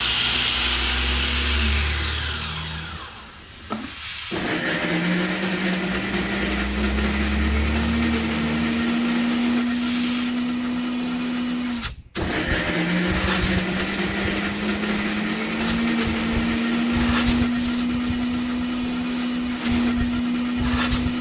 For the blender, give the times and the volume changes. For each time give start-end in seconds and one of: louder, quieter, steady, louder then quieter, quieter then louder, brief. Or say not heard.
0.0-21.1 steady.